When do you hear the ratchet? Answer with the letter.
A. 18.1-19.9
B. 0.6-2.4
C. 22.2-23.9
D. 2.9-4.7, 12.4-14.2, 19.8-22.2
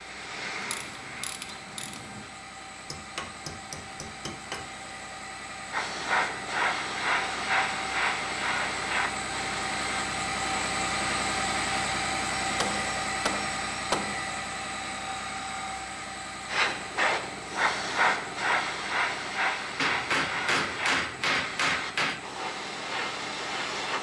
B.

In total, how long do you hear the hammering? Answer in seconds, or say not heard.
6 s.